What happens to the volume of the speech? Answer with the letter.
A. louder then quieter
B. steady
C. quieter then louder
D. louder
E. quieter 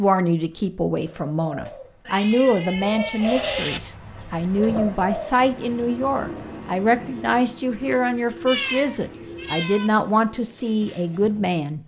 B.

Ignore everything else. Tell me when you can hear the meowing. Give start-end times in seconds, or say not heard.
2.0-3.8, 8.4-9.9.